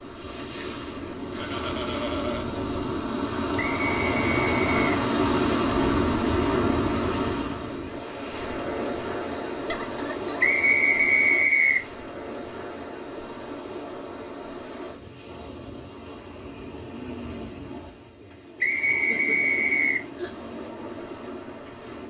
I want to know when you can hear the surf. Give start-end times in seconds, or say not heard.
0.0-22.0.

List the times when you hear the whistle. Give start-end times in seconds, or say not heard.
3.5-4.8, 10.4-11.8, 18.6-20.1.